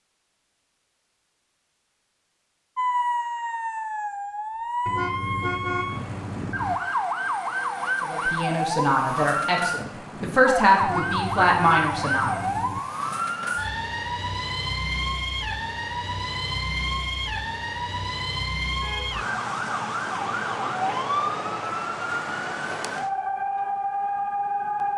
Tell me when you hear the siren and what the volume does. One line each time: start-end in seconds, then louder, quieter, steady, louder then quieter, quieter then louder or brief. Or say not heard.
2.8-24.9 steady.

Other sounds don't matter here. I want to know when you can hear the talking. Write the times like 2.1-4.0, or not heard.
8.0-12.4.